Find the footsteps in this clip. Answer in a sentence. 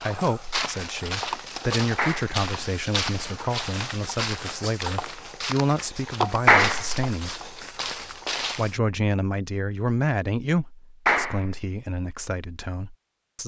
The footsteps can be heard from 0.0 to 8.8 s.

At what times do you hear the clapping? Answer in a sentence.
The clapping can be heard from 1.9 to 2.4 s, from 6.5 to 7.0 s and from 11.1 to 11.7 s.